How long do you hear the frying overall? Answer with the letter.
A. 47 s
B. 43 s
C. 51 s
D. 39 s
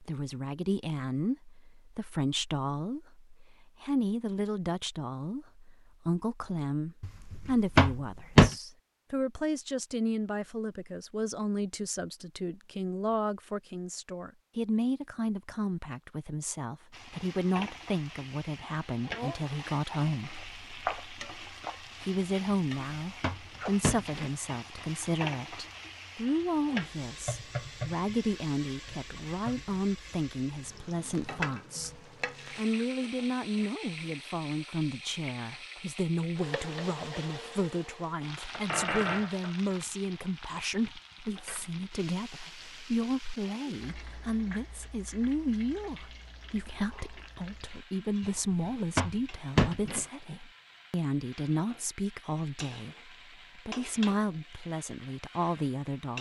D.